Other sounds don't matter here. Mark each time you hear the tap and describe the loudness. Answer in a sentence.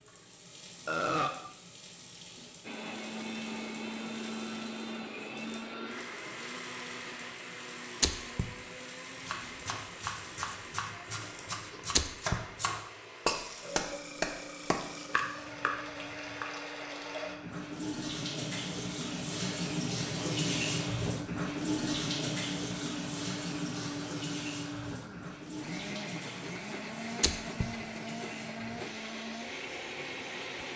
You can hear the tap from 0.0 to 30.7 s, getting louder then quieter.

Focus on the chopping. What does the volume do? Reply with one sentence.
The loudness of the chopping goes up, then down.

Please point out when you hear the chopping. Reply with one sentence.
The chopping can be heard from 9.2 to 16.4 s.